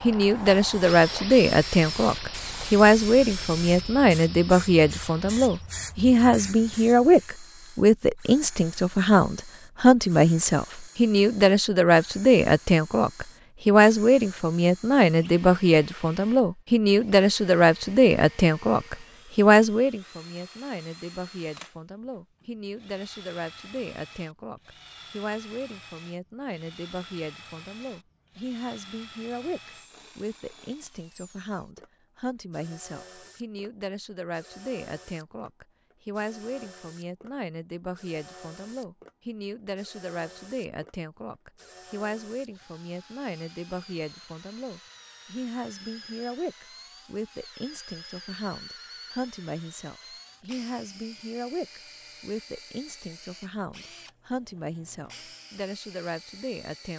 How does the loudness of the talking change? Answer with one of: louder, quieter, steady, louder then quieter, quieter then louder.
quieter.